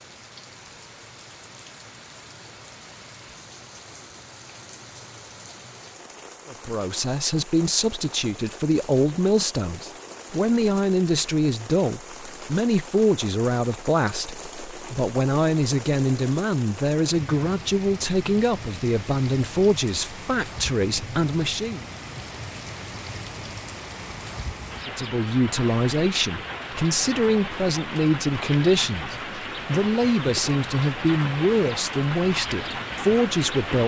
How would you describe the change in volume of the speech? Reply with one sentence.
The loudness of the speech stays about the same.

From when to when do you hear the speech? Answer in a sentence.
You can hear the speech from 6.5 to 21.9 s and from 24.9 to 33.8 s.